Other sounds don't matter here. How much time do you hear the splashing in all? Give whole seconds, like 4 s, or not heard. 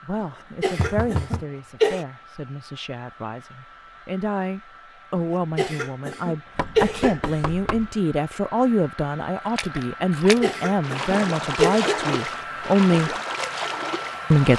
5 s.